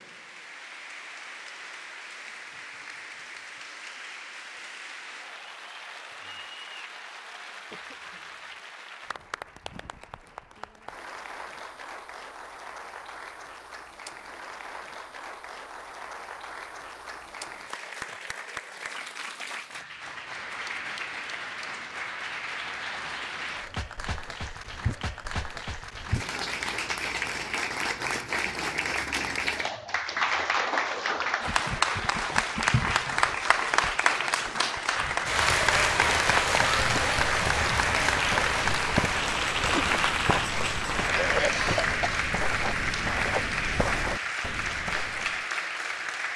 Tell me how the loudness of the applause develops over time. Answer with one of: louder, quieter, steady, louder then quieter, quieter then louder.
louder.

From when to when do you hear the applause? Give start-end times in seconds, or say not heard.
0.0-46.3.